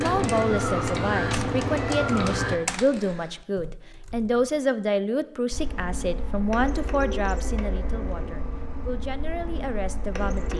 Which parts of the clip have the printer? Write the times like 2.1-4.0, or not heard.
0.0-2.6, 5.5-10.5.